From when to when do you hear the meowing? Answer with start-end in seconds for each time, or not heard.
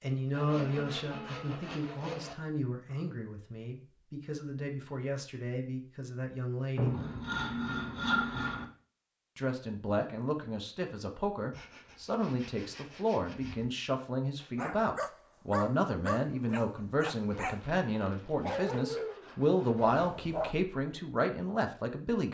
not heard.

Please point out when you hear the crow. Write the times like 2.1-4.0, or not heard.
not heard.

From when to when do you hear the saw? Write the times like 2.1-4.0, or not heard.
0.3-2.4, 6.8-8.7, 11.5-13.7, 17.4-20.0.